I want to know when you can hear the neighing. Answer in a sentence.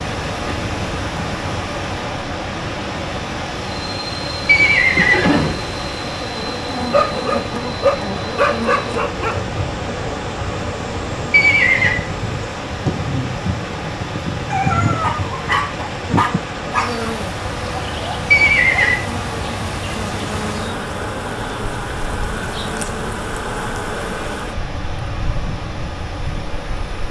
You can hear the neighing from 4.5 to 5.5 s, from 11.3 to 12.0 s and from 18.3 to 19.0 s.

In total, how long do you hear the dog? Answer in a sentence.
The dog can be heard for 5 seconds in total.